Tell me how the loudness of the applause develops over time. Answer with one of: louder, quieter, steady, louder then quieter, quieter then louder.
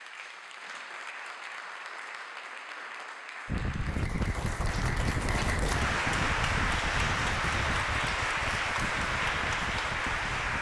louder.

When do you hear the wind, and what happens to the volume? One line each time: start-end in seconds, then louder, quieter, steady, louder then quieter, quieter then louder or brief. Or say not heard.
3.5-10.5 quieter.